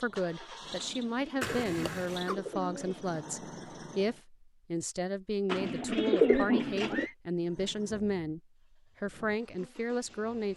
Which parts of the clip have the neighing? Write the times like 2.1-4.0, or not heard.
1.4-2.4, 6.2-7.2.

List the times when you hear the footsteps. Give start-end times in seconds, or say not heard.
not heard.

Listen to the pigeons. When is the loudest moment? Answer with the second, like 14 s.
6 s.